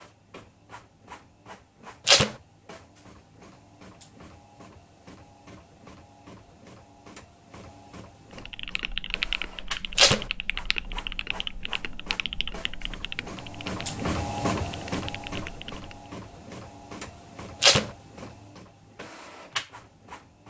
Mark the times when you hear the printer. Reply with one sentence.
The printer can be heard from 0.0 to 20.4 s.